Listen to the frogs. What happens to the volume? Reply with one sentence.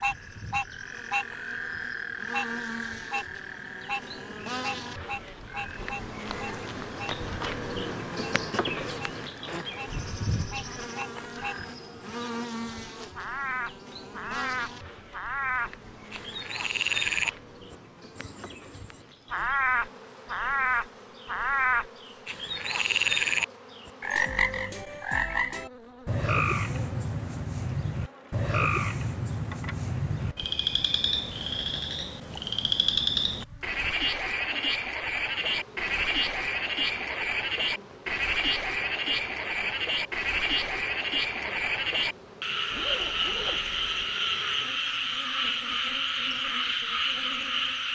The loudness of the frogs goes up.